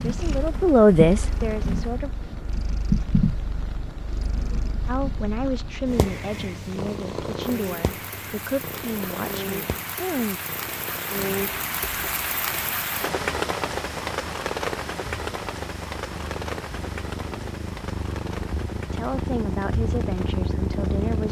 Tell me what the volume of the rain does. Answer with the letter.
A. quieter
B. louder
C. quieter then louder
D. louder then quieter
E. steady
D.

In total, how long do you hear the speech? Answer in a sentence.
The speech can be heard for 10 seconds in total.